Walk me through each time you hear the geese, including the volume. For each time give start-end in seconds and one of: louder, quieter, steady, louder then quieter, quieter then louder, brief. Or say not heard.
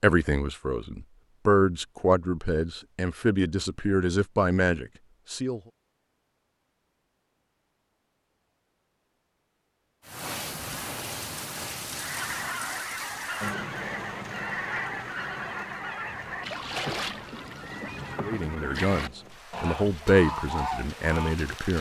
11.9-21.4 steady.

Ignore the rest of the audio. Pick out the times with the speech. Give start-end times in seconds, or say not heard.
0.0-5.6, 18.2-21.7.